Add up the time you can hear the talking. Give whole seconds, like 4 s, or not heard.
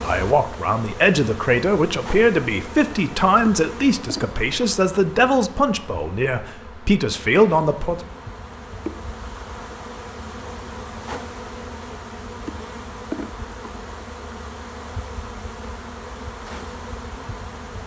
8 s.